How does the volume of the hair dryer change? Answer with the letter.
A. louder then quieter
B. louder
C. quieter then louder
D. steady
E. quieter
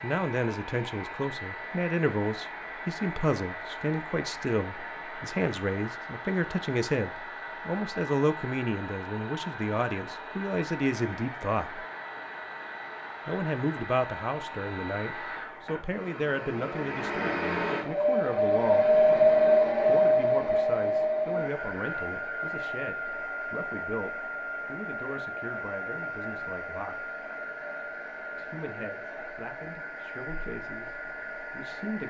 A.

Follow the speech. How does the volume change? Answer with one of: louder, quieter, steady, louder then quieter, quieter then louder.
quieter.